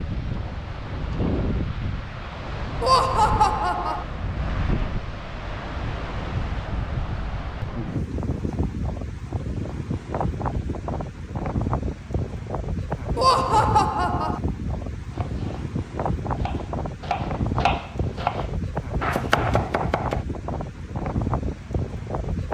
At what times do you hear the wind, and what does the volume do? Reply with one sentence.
The wind can be heard from 0.0 to 22.4 s, at a steady volume.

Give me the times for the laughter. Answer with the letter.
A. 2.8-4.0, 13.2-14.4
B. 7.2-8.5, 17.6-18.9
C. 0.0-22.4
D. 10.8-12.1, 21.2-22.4
A.